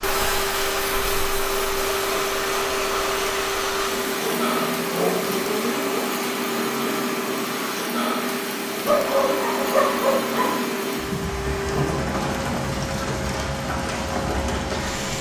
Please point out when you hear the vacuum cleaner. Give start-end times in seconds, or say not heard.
0.0-15.1.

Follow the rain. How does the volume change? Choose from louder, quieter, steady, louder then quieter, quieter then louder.
steady.